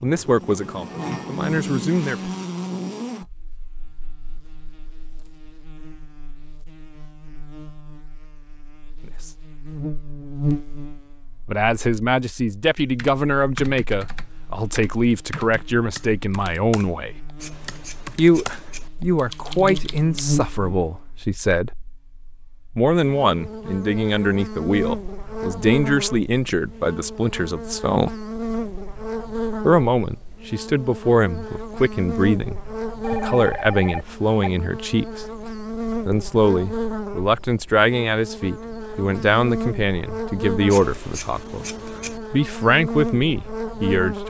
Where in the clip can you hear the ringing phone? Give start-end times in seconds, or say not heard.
33.0-34.5.